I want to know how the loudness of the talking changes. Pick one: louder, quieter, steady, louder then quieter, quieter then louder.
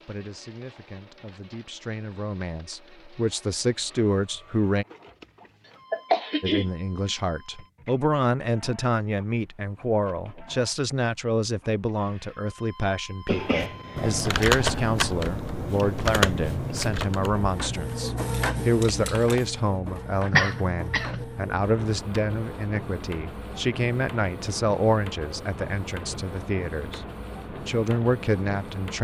steady.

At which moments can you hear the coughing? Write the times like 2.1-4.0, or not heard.
5.9-6.7, 13.2-14.2, 20.3-21.2.